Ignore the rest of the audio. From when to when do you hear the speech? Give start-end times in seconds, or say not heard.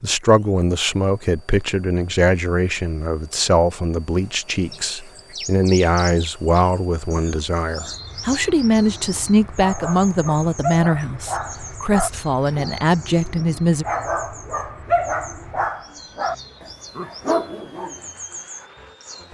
0.0-13.8.